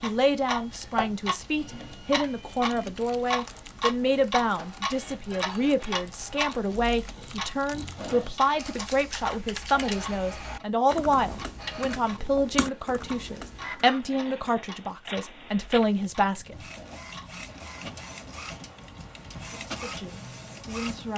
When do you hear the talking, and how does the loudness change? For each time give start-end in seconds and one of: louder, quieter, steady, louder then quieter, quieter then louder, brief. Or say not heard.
0.0-16.6 steady
19.6-21.1 brief.